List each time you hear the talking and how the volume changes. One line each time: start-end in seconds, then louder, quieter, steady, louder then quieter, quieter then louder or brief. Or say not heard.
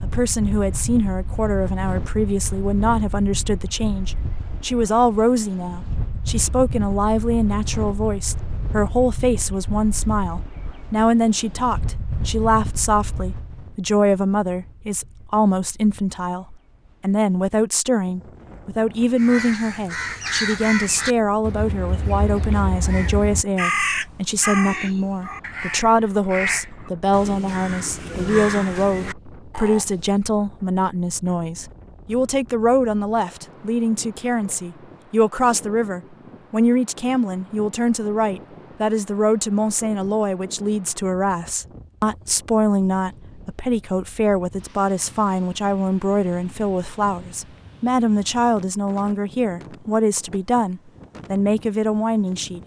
0.0-52.6 steady.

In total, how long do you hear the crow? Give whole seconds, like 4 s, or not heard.
11 s.